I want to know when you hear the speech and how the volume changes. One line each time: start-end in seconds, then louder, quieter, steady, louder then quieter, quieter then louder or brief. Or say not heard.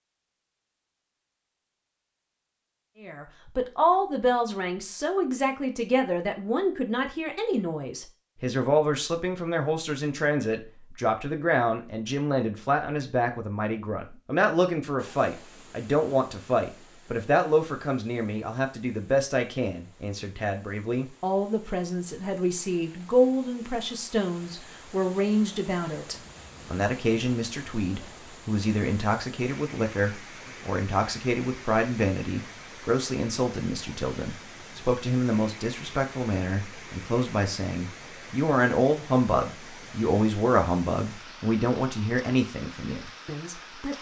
3.0-43.9 steady.